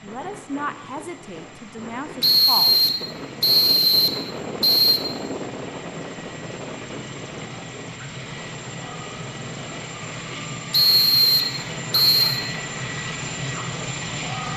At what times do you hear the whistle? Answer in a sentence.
You can hear the whistle from 2.2 to 5.0 s and from 10.7 to 12.4 s.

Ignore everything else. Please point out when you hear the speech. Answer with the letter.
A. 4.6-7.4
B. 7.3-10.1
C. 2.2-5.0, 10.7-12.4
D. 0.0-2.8
D.